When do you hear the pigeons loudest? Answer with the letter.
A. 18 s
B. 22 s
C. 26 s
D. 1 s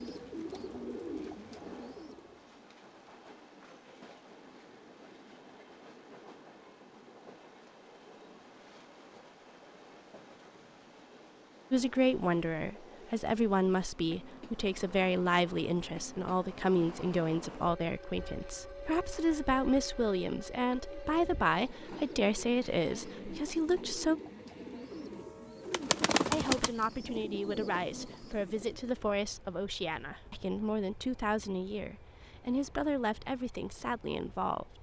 C.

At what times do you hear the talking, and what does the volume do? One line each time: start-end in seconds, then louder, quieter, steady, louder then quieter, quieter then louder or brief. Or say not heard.
11.7-24.2 steady
26.3-34.7 steady.